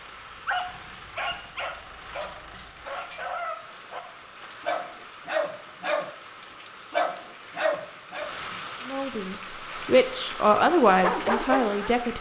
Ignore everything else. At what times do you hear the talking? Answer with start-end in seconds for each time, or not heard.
8.8-12.1.